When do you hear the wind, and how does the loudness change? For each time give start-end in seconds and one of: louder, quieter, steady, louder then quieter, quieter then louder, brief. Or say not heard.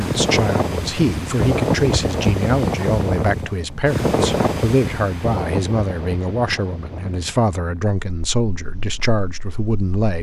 0.0-10.0 quieter.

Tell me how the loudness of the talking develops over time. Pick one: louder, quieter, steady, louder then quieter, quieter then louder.
steady.